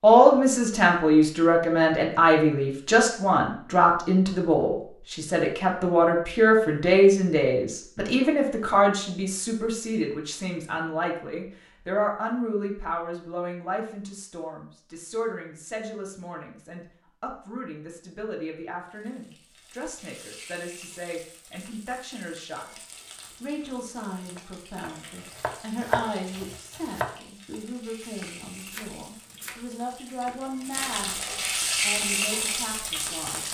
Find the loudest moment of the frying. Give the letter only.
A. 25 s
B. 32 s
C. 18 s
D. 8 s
B.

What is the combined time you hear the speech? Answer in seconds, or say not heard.
32 s.